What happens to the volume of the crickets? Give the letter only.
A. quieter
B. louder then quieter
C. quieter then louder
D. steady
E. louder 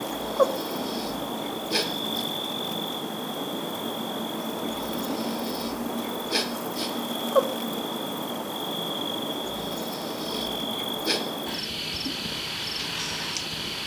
D.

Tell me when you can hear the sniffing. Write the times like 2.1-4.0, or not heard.
0.1-2.2, 4.7-7.0, 9.4-11.2.